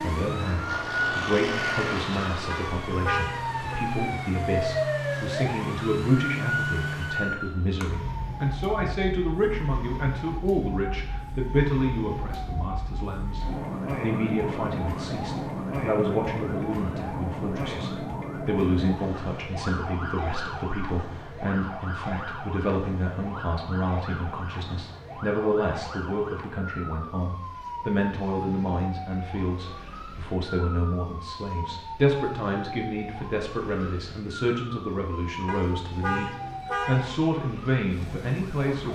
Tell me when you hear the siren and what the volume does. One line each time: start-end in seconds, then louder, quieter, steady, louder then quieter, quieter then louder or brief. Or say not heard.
0.0-38.8 quieter.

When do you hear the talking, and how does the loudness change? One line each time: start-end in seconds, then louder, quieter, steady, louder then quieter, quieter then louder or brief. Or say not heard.
0.0-38.8 steady.